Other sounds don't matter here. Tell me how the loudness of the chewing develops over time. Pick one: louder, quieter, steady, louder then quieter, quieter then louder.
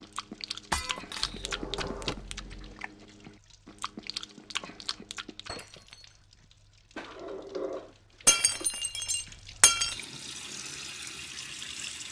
quieter then louder.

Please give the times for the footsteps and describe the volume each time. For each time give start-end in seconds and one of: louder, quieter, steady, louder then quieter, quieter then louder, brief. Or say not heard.
not heard.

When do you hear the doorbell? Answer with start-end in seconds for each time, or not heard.
not heard.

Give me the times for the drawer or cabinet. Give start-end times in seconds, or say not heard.
1.2-2.8, 7.0-8.7.